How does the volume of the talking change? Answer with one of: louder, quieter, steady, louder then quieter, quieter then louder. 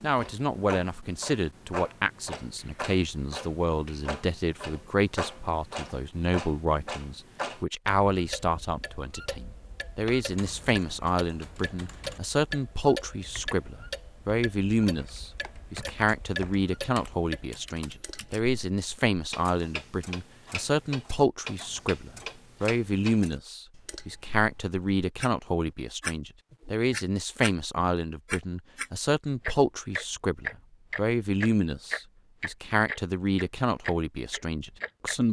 steady.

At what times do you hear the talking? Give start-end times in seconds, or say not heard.
0.0-35.2.